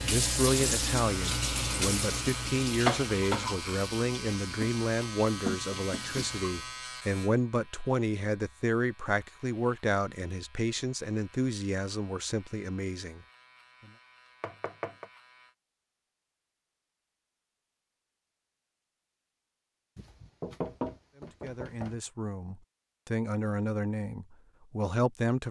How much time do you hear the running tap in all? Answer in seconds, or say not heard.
7 s.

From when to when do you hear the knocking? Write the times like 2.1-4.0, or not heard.
5.5-6.3, 14.4-15.1, 19.9-21.9.